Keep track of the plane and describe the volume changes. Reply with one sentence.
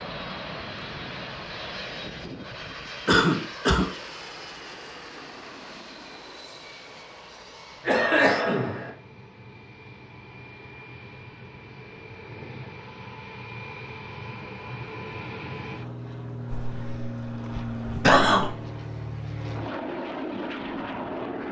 The volume of the plane goes down, then up.